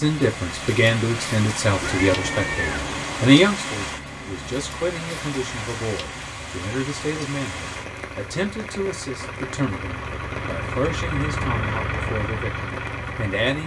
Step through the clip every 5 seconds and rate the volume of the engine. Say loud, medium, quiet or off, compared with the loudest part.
medium, medium, loud.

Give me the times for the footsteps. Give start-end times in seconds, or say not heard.
not heard.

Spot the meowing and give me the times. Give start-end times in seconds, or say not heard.
1.8-3.3.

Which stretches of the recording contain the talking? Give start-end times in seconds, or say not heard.
0.0-13.6.